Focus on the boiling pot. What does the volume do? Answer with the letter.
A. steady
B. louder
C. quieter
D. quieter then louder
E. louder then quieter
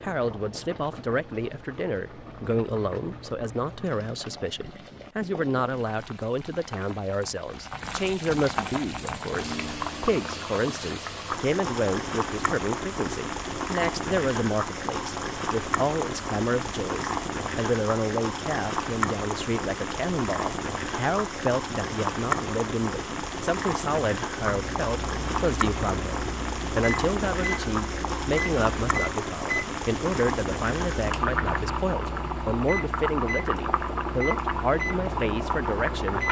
B.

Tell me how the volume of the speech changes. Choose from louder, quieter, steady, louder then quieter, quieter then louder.
steady.